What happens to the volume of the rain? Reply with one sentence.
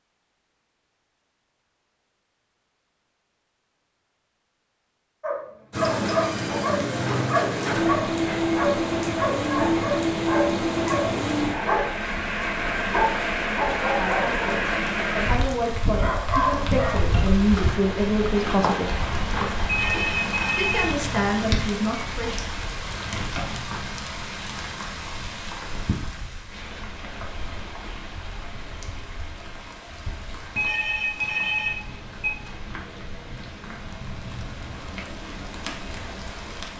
The loudness of the rain goes down.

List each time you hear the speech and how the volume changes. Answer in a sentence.
You can hear the speech from 13.9 to 18.9 s, getting louder; and briefly from 20.6 to 22.5 s.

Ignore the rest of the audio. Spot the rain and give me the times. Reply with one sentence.
The rain can be heard from 5.7 to 36.7 s.